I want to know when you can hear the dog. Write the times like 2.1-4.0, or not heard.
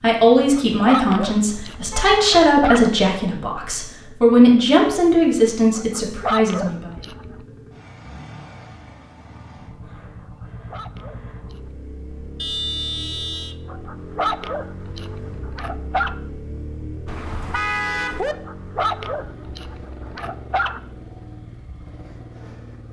0.4-2.9, 5.8-7.4, 10.2-11.8, 13.7-16.1, 18.2-20.8.